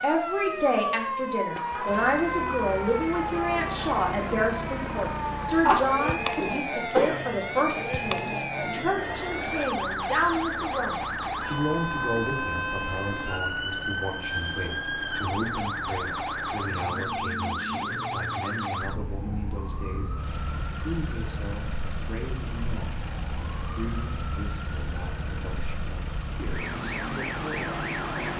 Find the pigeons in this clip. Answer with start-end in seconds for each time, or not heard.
not heard.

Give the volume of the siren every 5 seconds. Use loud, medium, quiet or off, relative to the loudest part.
loud, loud, loud, loud, medium, loud.